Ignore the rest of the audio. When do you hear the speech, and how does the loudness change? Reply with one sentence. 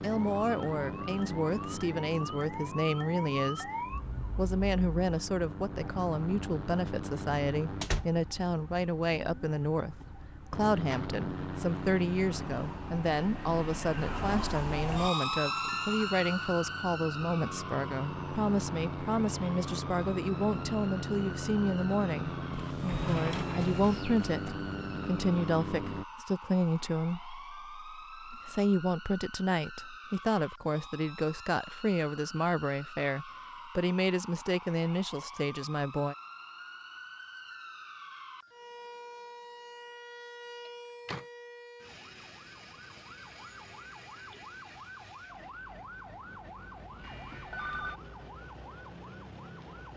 The speech can be heard from 0.0 to 36.1 s, at a steady volume.